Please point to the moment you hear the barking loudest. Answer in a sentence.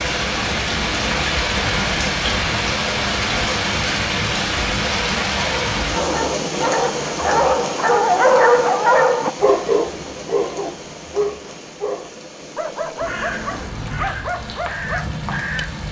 The loudest moment of the barking is at 8 seconds.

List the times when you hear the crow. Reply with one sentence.
You can hear the crow from 12.9 to 15.8 s.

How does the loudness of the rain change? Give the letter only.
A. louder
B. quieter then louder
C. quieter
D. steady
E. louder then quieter
C.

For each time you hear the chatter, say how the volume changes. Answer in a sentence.
You can't hear the chatter here.